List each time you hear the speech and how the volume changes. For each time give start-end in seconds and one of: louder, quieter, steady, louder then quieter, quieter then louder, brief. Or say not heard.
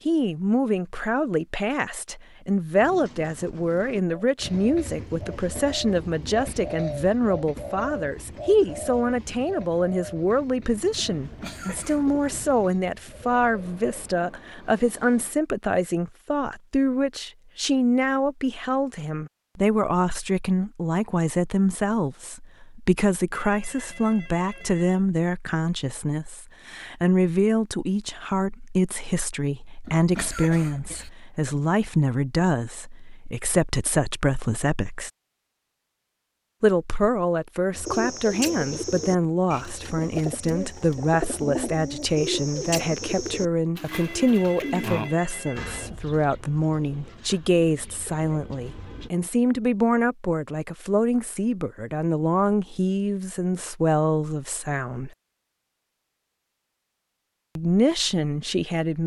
0.1-35.1 steady
36.6-55.1 steady
57.5-59.0 brief.